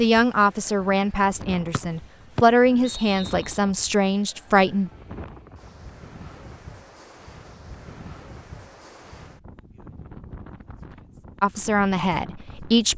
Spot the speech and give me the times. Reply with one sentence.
The speech can be heard from 0.0 to 4.9 s and from 11.4 to 12.9 s.